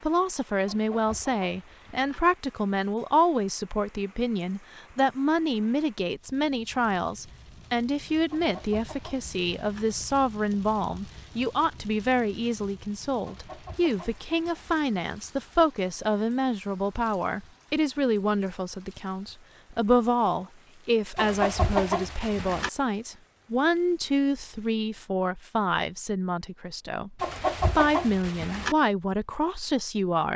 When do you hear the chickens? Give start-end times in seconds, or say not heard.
0.7-2.2, 8.3-9.8, 13.2-14.8, 21.1-22.7, 27.2-28.8.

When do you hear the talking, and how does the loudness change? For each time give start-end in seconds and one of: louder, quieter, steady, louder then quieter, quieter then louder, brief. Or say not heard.
0.0-30.3 steady.